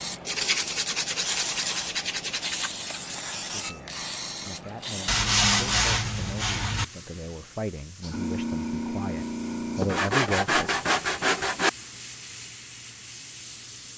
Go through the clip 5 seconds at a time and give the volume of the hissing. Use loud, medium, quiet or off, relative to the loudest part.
loud, loud, medium.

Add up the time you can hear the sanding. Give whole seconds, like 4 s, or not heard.
6 s.